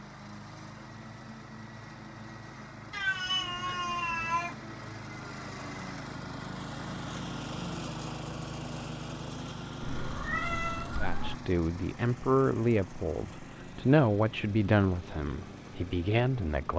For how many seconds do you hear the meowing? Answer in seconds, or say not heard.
3 s.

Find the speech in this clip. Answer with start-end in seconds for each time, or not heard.
11.0-16.7.